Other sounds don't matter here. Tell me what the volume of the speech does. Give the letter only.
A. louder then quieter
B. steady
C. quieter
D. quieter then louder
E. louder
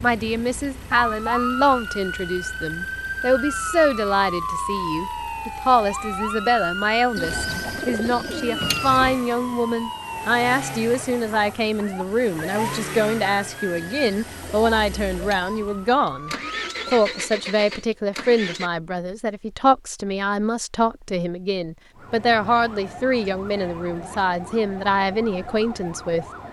B.